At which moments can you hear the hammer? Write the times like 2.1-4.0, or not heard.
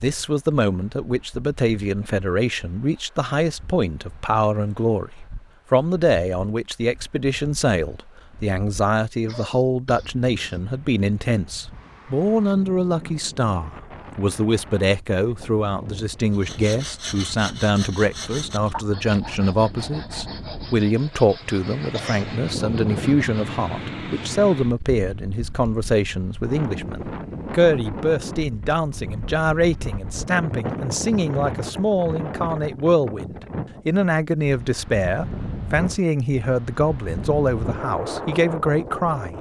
not heard.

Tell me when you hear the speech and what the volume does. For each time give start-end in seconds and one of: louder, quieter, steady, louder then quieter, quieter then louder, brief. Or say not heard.
0.0-39.3 steady.